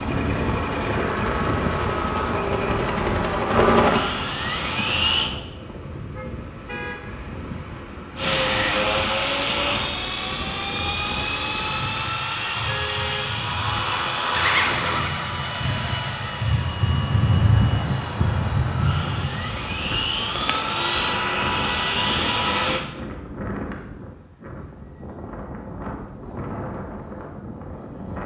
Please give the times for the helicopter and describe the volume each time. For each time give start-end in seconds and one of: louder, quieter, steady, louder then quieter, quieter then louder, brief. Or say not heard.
0.0-5.3 louder then quieter
8.2-22.9 quieter then louder.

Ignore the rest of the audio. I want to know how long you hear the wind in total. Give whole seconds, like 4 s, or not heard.
28 s.